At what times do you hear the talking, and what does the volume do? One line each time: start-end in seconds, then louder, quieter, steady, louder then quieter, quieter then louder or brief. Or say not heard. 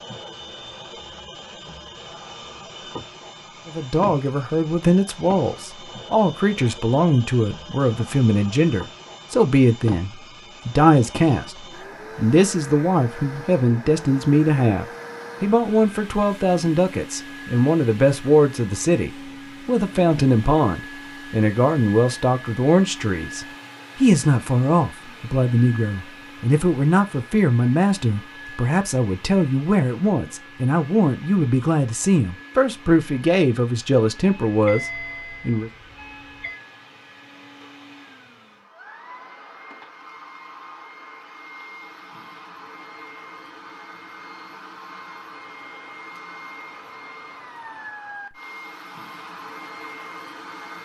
3.6-35.7 steady.